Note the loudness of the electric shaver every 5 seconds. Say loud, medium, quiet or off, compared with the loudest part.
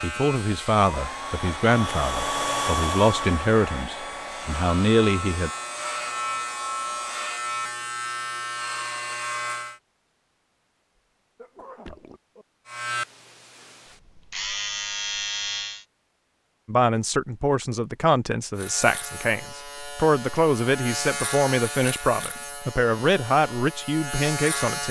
medium, loud, loud, loud, loud.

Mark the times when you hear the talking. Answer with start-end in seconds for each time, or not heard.
0.0-5.5, 16.6-24.8.